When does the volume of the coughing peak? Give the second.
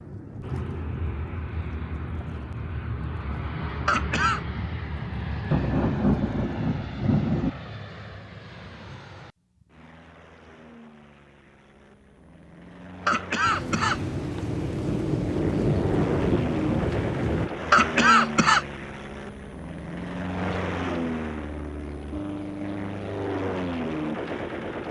18 s.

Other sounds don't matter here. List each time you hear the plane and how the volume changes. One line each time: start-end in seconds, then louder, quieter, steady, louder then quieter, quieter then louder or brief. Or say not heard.
0.0-24.8 quieter then louder.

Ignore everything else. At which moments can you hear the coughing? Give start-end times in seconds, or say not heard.
3.9-4.4, 13.1-14.4, 17.7-18.6.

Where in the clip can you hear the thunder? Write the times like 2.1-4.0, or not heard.
5.5-7.5, 13.4-17.5.